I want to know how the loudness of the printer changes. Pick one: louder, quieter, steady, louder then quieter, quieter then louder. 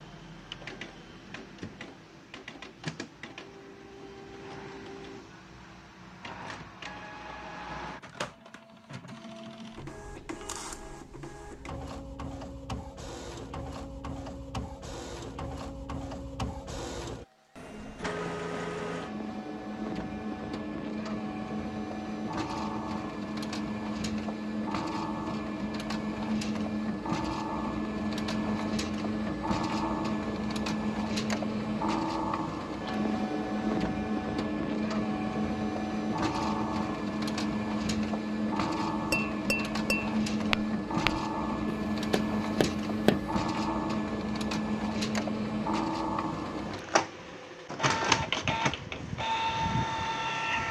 louder.